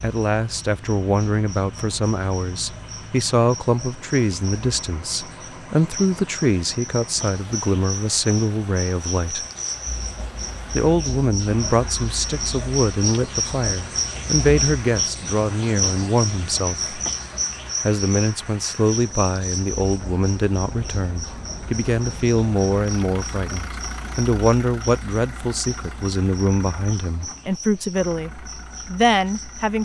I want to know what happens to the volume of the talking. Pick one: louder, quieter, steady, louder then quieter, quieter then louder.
steady.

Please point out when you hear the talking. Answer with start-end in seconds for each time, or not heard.
0.0-9.4, 10.8-16.9, 17.9-29.7.